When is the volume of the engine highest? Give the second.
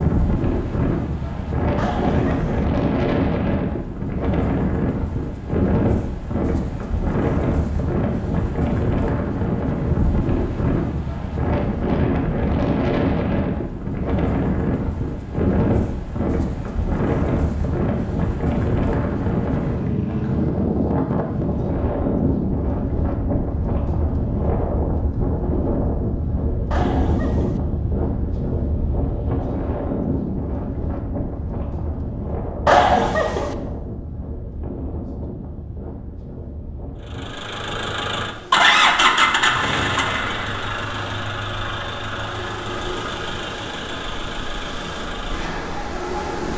39 s.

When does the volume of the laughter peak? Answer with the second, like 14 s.
33 s.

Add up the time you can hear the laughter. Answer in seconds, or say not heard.
3 s.